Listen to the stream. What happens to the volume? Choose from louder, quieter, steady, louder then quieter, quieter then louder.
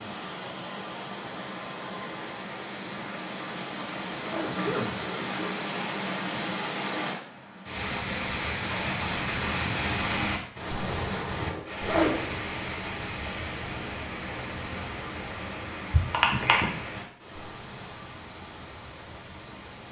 louder then quieter.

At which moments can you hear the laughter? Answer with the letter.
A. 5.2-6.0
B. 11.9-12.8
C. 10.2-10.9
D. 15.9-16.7
D.